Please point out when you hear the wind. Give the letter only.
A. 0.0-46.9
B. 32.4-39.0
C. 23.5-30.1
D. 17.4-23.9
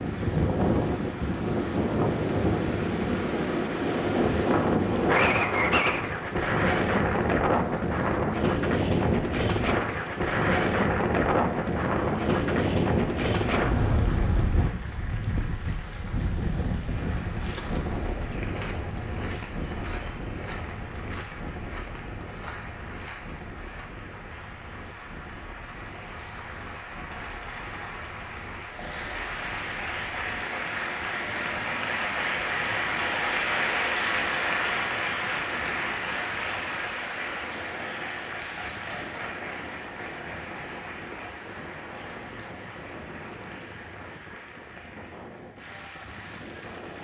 A.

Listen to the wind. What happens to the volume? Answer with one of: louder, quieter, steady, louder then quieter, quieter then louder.
quieter.